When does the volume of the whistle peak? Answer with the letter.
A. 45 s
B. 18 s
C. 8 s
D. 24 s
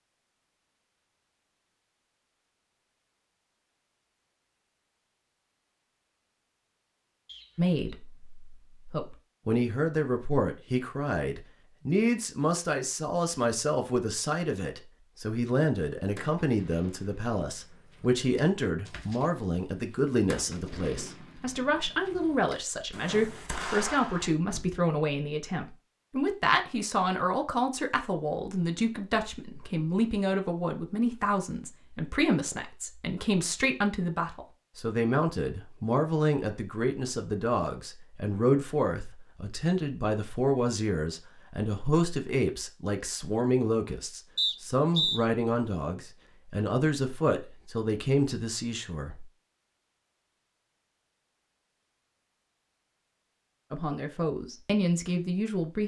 A.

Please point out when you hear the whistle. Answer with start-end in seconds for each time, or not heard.
7.2-7.8, 44.4-45.2.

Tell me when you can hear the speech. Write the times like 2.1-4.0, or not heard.
7.5-49.2, 53.7-55.8.